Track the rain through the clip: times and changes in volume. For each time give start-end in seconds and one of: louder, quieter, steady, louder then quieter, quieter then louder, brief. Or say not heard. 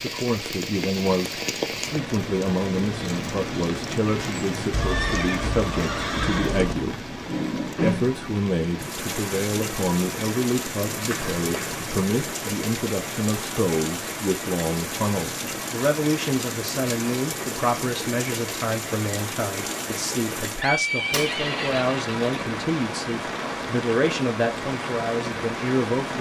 0.0-26.1 steady.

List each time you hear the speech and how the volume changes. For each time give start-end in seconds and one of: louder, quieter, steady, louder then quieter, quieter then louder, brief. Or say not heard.
0.0-26.1 steady.